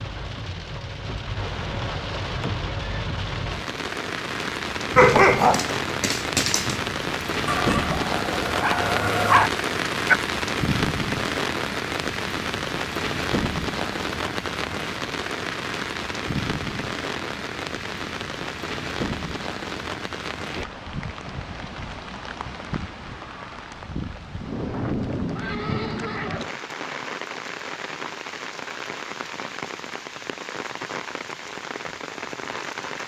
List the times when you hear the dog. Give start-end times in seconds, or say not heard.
5.0-10.2.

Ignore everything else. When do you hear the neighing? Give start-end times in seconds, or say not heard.
1.4-3.0, 24.4-26.4.